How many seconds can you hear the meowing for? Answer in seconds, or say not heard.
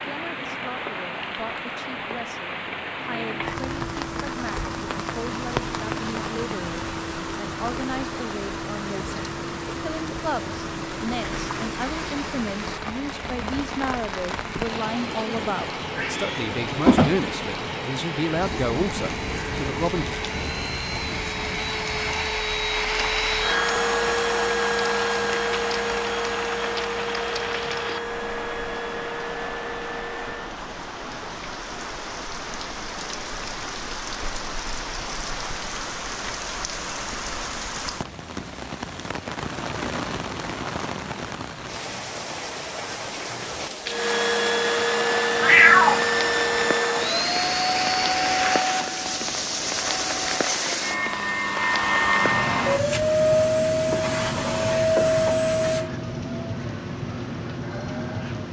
2 s.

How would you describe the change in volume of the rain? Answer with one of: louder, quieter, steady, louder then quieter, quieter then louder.
steady.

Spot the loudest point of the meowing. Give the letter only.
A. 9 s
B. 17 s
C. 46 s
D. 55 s
C.